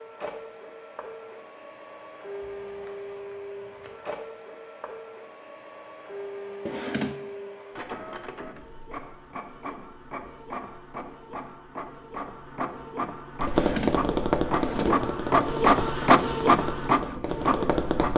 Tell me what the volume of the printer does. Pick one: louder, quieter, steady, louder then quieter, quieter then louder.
louder.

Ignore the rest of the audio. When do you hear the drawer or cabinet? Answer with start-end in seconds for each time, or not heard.
6.7-7.2, 13.4-15.1.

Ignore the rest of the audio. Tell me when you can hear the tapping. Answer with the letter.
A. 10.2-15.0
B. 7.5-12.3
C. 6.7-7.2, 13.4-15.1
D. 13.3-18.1
D.